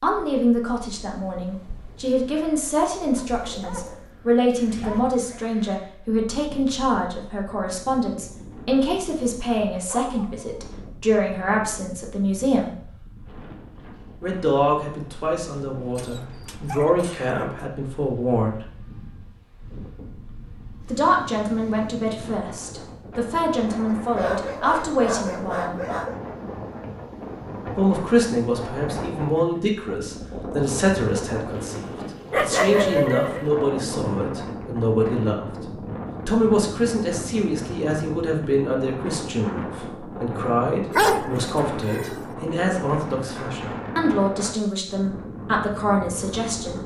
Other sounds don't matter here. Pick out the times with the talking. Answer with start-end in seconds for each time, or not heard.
0.0-12.7, 14.2-18.6, 20.9-25.8, 27.8-35.5, 36.2-46.8.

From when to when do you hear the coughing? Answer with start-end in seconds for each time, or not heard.
not heard.